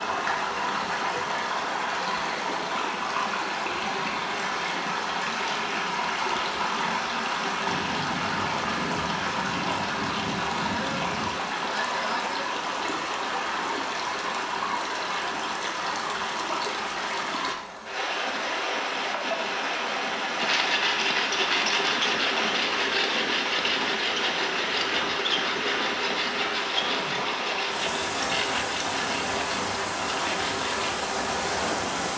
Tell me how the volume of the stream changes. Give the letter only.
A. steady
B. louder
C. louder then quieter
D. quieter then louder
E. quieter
A.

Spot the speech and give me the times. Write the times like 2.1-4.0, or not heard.
not heard.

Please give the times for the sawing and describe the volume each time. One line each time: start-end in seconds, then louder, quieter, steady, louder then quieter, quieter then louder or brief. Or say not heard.
20.4-30.9 quieter.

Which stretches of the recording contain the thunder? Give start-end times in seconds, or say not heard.
7.7-11.4.